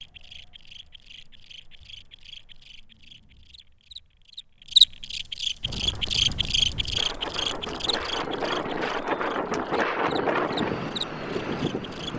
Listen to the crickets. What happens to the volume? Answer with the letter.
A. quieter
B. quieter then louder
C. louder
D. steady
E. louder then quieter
E.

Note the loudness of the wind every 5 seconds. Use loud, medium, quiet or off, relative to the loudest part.
off, loud, loud.